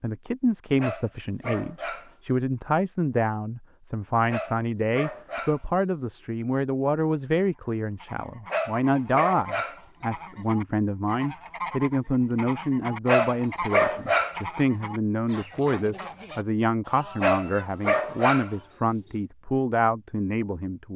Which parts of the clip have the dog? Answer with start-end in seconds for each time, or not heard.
0.8-2.1, 4.3-6.2, 8.5-10.4, 13.1-14.4, 17.2-19.1.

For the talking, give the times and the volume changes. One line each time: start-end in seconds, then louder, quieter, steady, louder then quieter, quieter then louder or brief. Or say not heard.
0.0-20.9 steady.